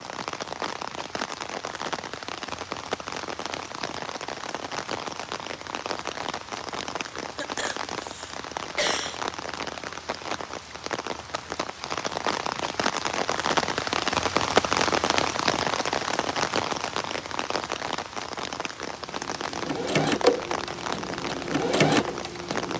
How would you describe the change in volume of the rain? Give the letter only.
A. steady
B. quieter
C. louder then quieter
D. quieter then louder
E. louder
C.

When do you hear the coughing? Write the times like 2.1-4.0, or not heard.
7.3-9.2.